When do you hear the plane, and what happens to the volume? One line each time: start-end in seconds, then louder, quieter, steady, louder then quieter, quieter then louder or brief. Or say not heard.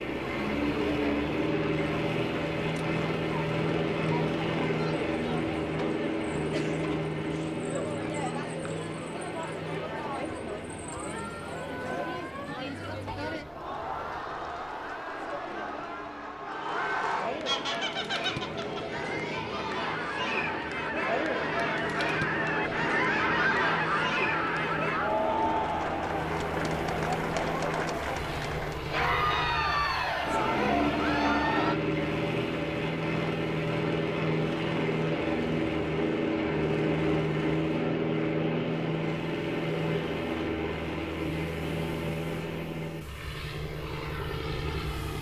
0.0-45.1 quieter then louder.